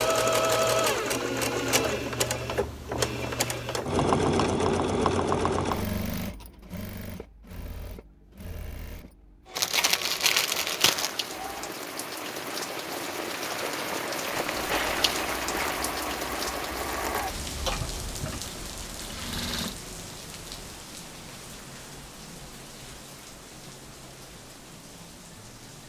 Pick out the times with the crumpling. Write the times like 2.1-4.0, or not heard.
9.6-11.2, 14.2-15.9.